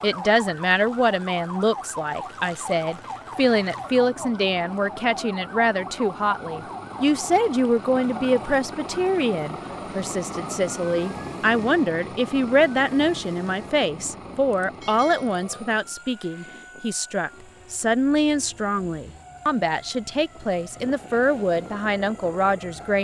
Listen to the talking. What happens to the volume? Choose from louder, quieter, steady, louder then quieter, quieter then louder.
steady.